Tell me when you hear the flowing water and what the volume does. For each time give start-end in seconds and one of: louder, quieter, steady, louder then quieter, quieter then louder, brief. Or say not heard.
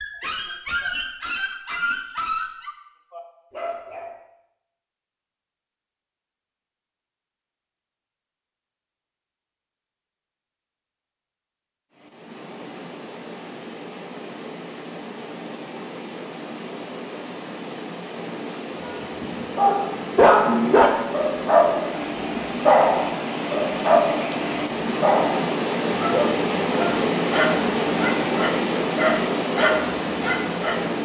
11.9-31.0 louder.